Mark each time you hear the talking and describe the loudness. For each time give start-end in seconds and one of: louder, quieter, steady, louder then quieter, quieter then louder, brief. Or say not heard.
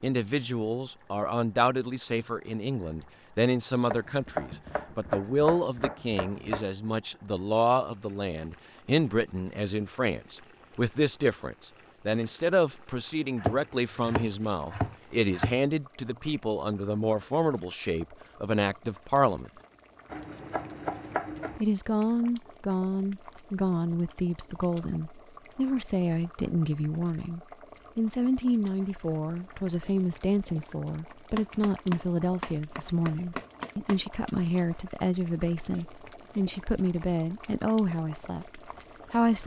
0.0-19.5 steady
21.6-39.4 steady.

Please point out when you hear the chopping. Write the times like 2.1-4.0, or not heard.
3.9-6.7, 13.3-15.6, 20.1-21.6, 31.4-34.0.